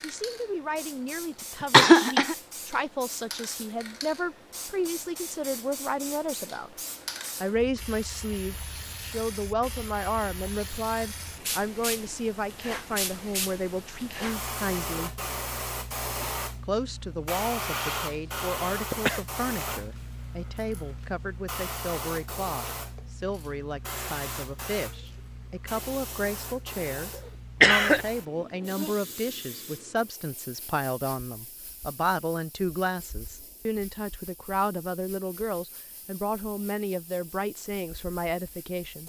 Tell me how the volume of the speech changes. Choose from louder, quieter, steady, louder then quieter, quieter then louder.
steady.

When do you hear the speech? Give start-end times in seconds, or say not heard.
0.0-6.8, 7.4-15.1, 16.6-39.0.